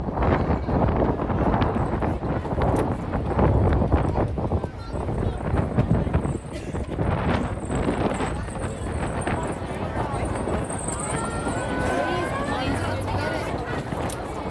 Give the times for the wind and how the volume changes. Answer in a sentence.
You can hear the wind from 0.0 to 14.4 s, getting quieter.